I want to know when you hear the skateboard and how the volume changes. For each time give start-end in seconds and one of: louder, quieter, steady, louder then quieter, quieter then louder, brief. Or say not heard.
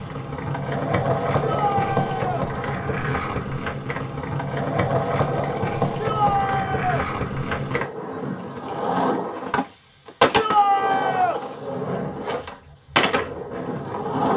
0.0-14.3 steady.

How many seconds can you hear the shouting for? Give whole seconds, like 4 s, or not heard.
3 s.